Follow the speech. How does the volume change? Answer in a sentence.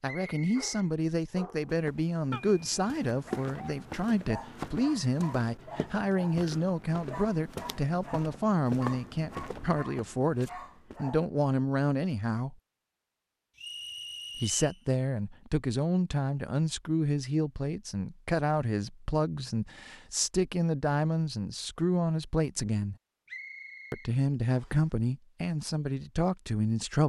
The volume of the speech stays about the same.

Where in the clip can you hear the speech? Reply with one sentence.
You can hear the speech from 0.0 to 12.6 s, from 14.3 to 22.9 s and from 23.9 to 27.0 s.